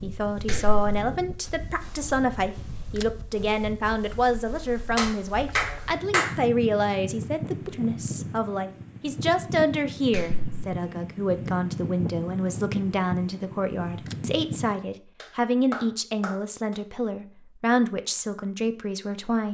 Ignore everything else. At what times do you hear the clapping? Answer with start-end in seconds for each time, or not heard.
0.5-0.9, 5.0-6.3, 10.1-10.6, 15.2-16.8.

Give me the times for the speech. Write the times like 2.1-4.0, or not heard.
0.0-19.5.